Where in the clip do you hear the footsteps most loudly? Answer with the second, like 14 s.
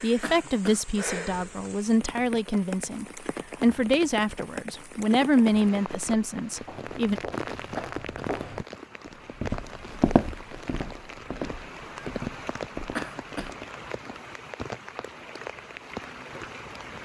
10 s.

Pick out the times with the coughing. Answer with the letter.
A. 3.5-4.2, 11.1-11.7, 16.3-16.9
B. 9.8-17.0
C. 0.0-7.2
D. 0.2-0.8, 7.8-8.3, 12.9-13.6
D.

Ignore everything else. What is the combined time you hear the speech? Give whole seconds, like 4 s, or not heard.
7 s.